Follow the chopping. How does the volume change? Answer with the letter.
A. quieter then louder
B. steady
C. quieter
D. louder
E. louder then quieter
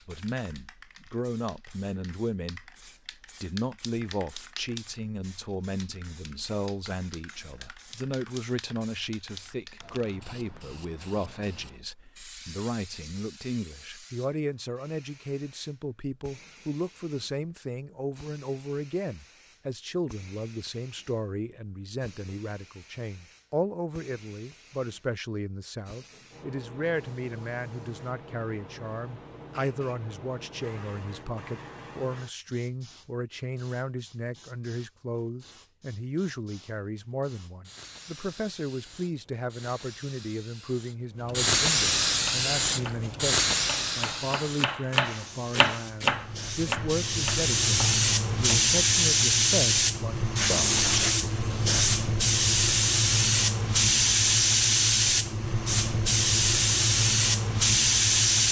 E.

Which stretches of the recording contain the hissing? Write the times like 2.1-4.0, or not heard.
0.0-58.4.